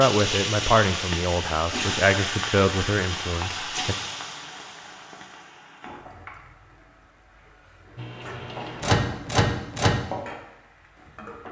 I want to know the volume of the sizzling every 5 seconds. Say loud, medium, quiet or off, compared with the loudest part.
loud, quiet, medium.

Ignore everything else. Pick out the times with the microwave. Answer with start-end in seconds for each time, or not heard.
8.0-10.0.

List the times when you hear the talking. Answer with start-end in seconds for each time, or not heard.
0.0-4.0.